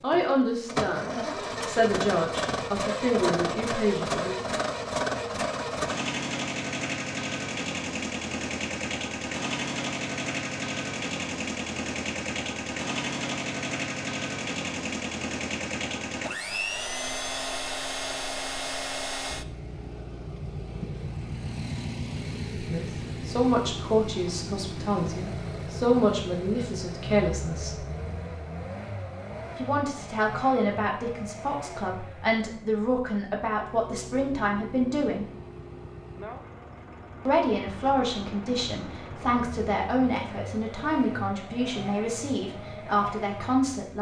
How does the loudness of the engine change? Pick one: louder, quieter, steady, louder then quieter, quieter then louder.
quieter.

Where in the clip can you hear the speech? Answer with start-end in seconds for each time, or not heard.
0.0-4.3, 22.6-27.9, 29.6-35.2, 37.2-43.9.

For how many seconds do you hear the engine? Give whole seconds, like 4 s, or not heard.
44 s.